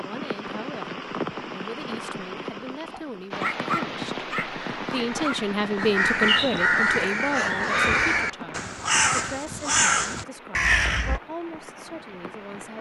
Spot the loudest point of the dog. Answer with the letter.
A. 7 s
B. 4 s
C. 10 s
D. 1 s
B.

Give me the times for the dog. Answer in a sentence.
The dog can be heard from 2.9 to 5.4 s.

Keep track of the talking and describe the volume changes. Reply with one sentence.
The loudness of the talking goes up, then down.